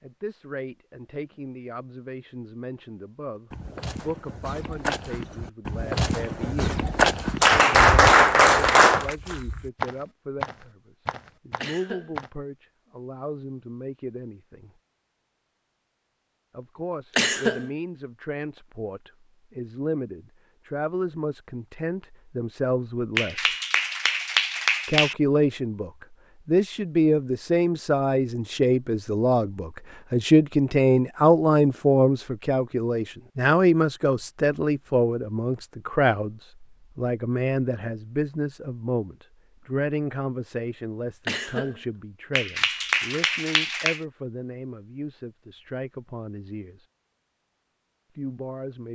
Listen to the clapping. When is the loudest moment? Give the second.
8 s.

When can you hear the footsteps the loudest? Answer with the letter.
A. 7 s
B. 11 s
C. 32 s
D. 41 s
A.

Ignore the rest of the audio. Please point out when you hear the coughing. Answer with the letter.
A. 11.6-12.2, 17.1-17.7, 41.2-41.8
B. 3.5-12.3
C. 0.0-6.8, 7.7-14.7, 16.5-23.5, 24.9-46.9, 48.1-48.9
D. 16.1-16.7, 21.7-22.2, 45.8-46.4
A.